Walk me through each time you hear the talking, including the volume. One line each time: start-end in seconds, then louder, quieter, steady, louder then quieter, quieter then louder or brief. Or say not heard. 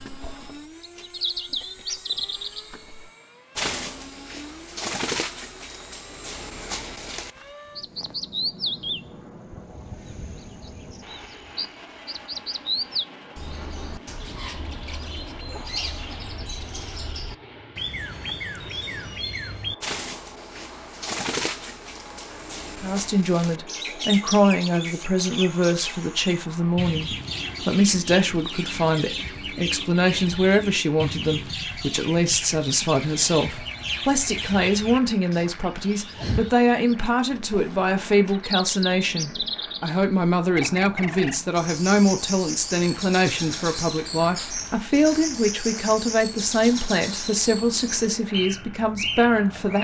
22.8-49.7 steady.